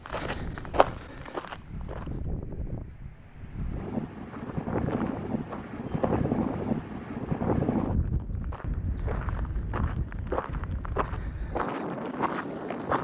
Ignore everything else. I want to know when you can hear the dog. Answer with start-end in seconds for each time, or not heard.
not heard.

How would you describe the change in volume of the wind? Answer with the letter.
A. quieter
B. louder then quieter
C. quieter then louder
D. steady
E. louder
B.